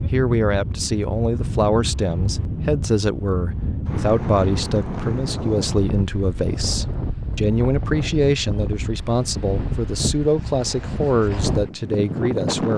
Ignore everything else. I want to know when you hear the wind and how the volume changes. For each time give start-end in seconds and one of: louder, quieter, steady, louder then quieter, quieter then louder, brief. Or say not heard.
0.0-12.7 steady.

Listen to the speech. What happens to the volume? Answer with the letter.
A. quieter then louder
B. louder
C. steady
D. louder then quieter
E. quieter
C.